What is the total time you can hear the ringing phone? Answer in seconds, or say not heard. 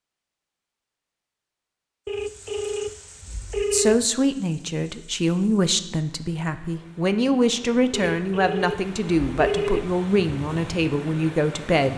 4 s.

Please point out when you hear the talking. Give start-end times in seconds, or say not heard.
3.7-11.9.